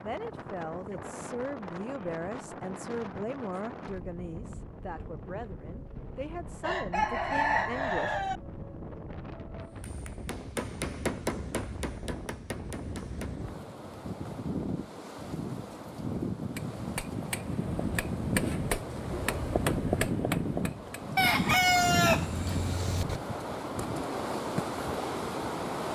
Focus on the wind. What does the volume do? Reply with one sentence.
The loudness of the wind goes up.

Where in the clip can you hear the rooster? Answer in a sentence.
The rooster can be heard from 6.6 to 8.4 s and from 21.1 to 23.2 s.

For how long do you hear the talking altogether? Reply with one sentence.
The talking can be heard for 8 seconds in total.